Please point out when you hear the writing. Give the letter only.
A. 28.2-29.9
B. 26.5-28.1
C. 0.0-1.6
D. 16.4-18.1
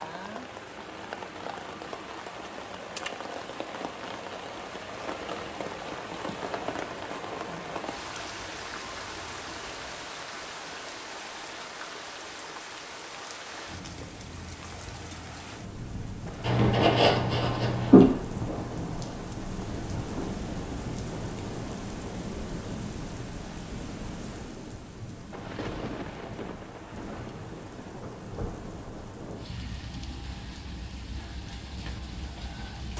D.